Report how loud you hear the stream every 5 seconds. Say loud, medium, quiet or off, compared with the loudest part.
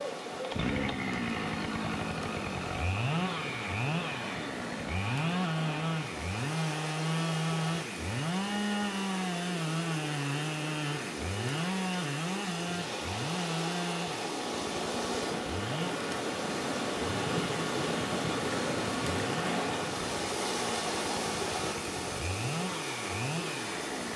medium, medium, medium, loud, loud.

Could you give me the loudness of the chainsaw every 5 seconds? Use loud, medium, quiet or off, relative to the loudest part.
loud, loud, loud, medium, medium.